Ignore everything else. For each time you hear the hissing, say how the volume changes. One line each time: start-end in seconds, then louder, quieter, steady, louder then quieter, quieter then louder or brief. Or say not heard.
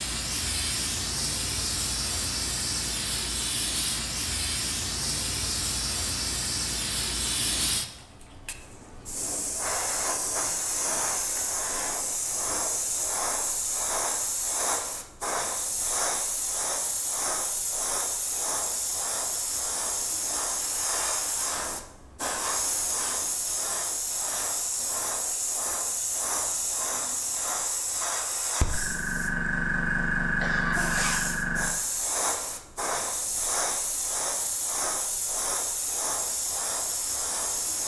0.0-37.8 steady.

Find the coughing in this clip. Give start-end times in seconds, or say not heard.
30.4-31.3.